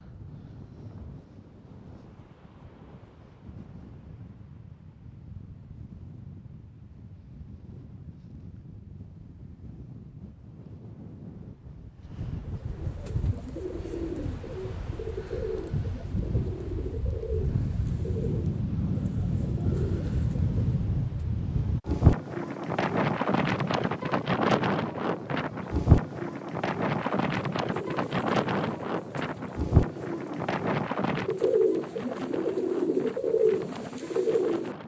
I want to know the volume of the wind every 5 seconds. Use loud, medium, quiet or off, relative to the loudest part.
quiet, quiet, quiet, medium, loud, loud, medium.